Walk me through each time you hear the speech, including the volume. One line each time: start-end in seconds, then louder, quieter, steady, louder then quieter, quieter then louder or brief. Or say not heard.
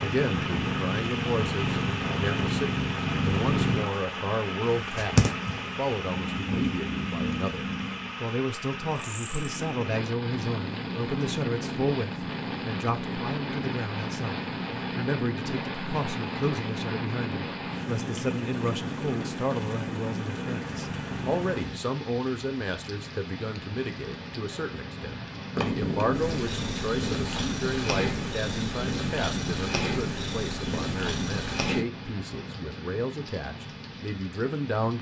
0.0-34.9 steady.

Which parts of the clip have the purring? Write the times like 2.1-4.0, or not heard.
0.0-21.8, 25.6-31.9.